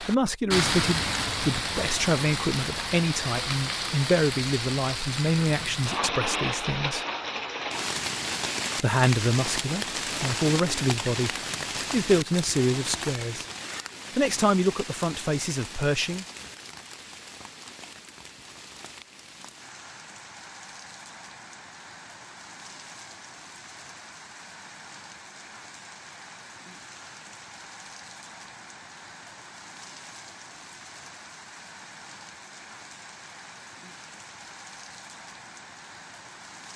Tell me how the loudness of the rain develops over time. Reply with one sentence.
The volume of the rain goes down.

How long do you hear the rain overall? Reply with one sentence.
You can hear the rain for 37 seconds altogether.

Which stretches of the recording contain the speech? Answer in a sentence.
The speech can be heard from 0.0 to 7.0 s, from 8.8 to 13.4 s and from 14.2 to 16.2 s.